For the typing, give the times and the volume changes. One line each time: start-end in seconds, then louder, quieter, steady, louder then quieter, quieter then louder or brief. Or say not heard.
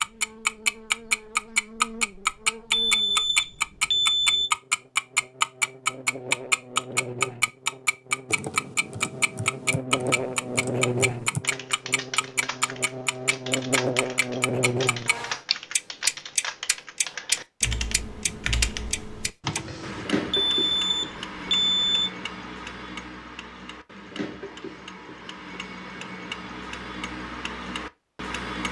8.2-20.1 louder.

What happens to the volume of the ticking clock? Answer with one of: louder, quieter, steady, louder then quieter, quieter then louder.
quieter.